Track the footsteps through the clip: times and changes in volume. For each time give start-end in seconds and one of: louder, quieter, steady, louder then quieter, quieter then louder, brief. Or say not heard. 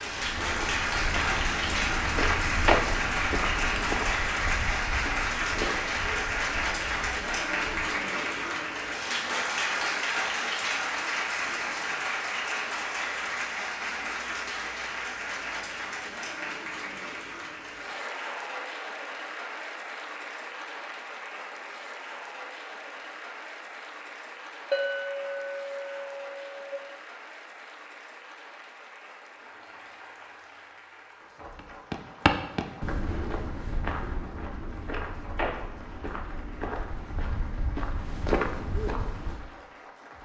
0.0-7.9 louder then quieter
31.6-39.5 quieter then louder.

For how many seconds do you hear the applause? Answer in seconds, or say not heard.
40 s.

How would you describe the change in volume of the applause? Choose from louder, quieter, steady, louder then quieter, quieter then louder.
quieter.